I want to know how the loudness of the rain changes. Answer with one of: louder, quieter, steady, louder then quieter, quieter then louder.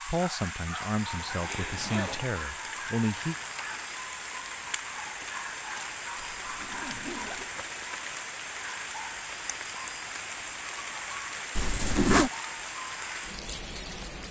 steady.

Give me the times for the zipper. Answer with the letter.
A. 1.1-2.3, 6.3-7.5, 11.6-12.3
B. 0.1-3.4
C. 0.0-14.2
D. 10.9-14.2
A.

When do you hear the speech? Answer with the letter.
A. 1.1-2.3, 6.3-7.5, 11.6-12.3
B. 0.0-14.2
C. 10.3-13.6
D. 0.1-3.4
D.